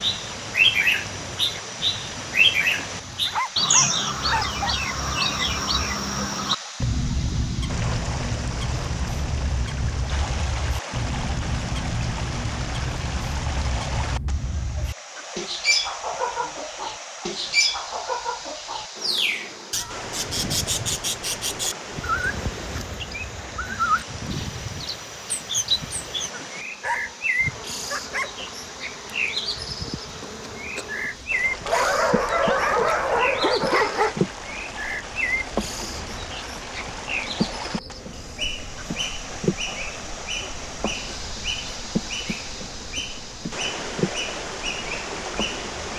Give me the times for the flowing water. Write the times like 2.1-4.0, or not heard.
0.0-45.9.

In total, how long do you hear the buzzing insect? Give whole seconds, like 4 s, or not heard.
27 s.